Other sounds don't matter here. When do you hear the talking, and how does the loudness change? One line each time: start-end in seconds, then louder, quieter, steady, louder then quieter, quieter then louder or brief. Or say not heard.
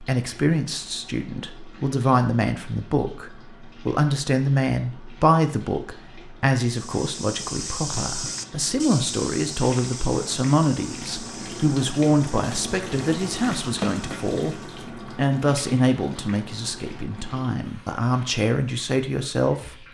0.0-19.7 steady.